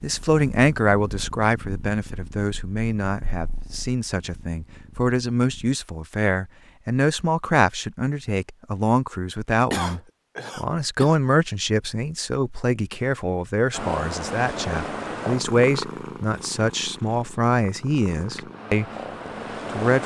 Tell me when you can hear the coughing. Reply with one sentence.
You can hear the coughing from 9.7 to 11.2 s.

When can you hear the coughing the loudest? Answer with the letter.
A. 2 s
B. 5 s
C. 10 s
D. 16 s
C.